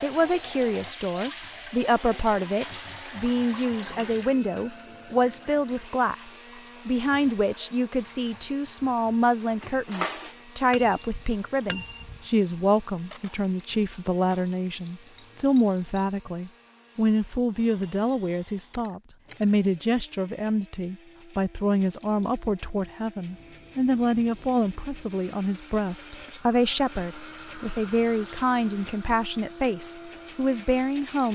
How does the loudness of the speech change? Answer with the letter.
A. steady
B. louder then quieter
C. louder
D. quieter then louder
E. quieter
A.